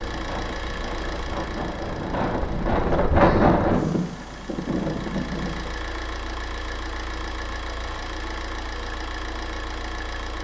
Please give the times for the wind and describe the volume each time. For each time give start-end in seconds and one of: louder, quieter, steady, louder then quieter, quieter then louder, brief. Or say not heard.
0.0-5.8 louder then quieter.